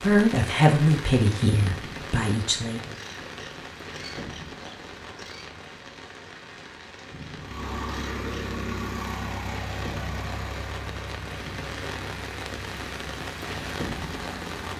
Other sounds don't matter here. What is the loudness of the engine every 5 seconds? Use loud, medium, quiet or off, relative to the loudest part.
off, loud, medium.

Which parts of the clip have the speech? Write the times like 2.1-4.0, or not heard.
0.0-3.0.